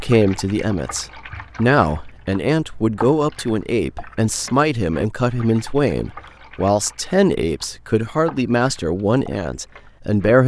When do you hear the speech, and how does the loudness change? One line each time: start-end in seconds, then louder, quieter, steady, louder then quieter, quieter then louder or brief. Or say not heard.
0.0-10.4 steady.